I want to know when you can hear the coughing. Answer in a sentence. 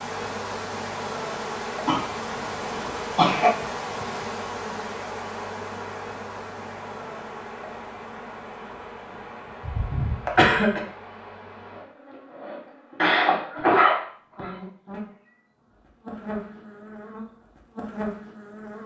You can hear the coughing from 1.9 to 3.5 s, from 9.6 to 10.8 s and from 12.9 to 14.6 s.